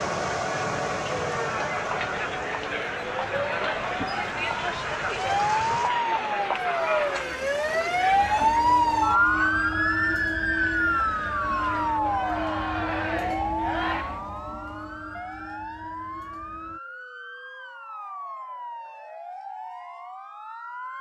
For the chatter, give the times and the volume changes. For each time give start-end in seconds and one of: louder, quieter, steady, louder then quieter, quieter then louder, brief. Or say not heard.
0.0-14.2 quieter then louder.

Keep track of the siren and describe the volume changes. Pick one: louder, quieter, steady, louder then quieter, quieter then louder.
louder then quieter.